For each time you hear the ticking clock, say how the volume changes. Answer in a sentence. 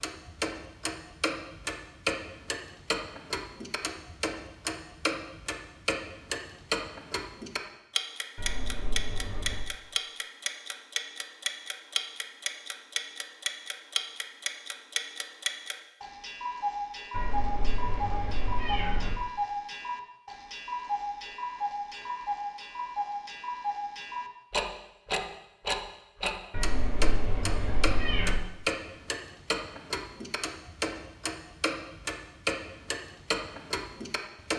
You can hear the ticking clock from 0.0 to 34.5 s, at a steady volume.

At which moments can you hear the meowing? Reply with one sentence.
You can hear the meowing from 8.3 to 9.7 s, from 17.1 to 19.1 s and from 26.5 to 28.4 s.